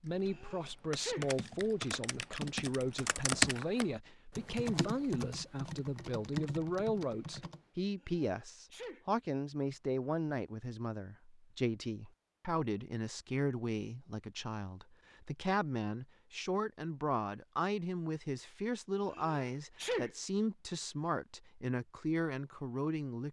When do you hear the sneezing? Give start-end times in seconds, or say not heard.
0.2-1.3, 8.0-9.1, 19.1-20.1.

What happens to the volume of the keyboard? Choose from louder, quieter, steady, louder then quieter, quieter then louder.
louder then quieter.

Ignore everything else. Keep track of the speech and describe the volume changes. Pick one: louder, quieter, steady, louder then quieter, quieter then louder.
steady.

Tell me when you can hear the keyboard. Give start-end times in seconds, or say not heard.
0.1-7.6.